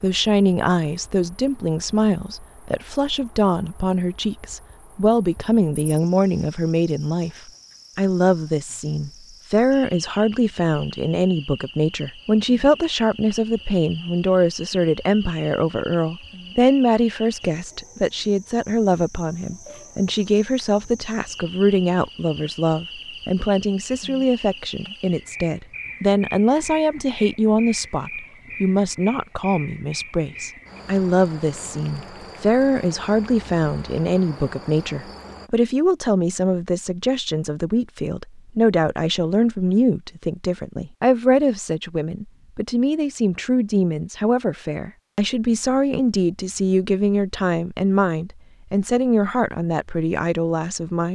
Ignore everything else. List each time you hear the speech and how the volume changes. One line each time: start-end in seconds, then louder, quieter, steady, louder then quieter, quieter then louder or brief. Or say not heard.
0.0-51.1 steady.